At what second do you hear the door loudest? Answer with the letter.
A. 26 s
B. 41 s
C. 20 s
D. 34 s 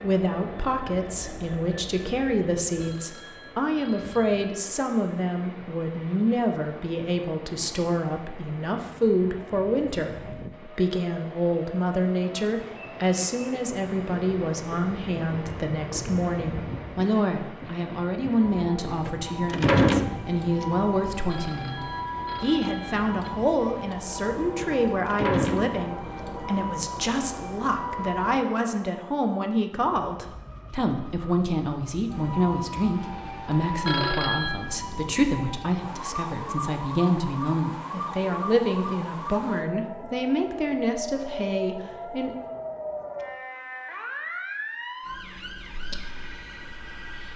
C.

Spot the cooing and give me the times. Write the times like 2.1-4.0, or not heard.
not heard.